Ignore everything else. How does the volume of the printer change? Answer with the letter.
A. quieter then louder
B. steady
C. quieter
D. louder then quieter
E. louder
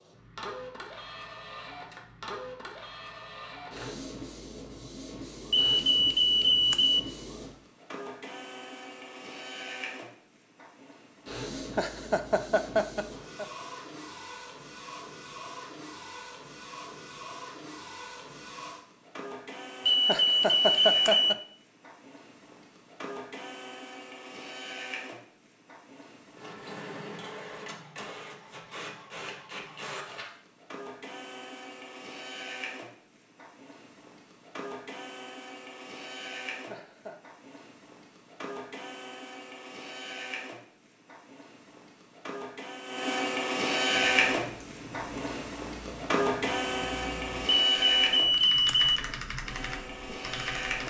E.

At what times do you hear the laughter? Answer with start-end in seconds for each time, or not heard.
11.6-13.4, 19.9-21.4, 36.5-37.1.